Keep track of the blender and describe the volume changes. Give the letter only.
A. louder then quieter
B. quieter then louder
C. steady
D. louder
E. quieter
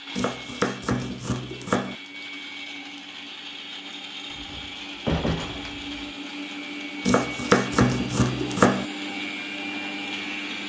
D.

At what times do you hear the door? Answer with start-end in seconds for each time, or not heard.
4.3-6.0.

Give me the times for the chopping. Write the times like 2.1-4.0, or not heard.
0.1-1.9, 7.0-8.8.